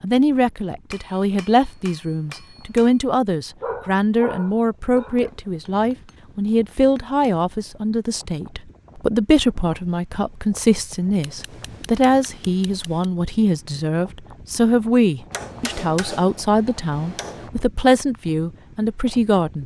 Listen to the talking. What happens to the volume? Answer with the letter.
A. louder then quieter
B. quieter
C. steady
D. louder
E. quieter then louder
C.